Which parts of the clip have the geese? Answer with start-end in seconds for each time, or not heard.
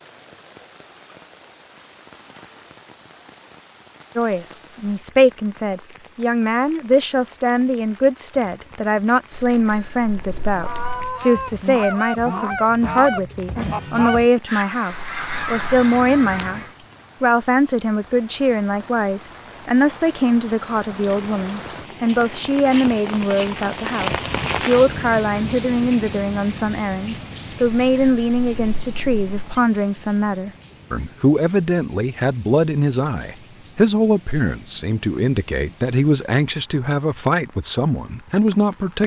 10.5-16.8.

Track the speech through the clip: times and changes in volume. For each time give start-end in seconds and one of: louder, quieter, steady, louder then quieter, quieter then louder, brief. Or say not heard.
4.2-39.0 steady.